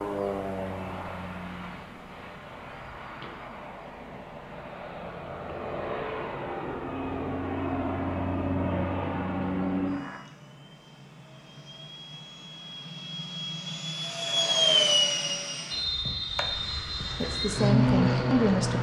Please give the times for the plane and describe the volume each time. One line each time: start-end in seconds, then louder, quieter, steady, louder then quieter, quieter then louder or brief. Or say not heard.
0.0-18.7 louder.